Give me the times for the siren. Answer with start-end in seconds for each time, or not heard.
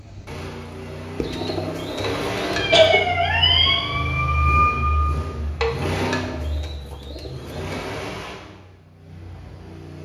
2.5-5.2.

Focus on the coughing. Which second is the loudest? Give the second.
3 s.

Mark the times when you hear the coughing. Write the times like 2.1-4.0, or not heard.
2.0-3.1, 5.6-6.2.